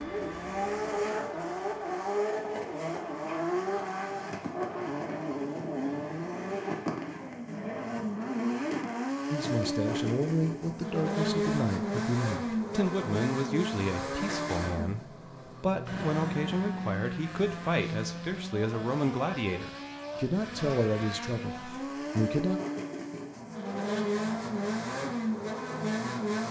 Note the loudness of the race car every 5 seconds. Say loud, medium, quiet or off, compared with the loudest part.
loud, loud, loud, medium, loud, loud.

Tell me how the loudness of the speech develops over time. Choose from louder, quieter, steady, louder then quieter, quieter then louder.
steady.